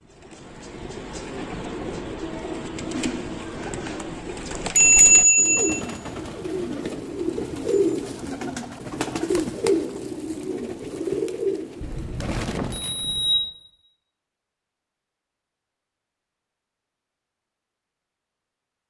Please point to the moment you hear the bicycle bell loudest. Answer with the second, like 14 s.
5 s.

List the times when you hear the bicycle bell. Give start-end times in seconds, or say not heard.
4.8-5.8, 11.8-13.4.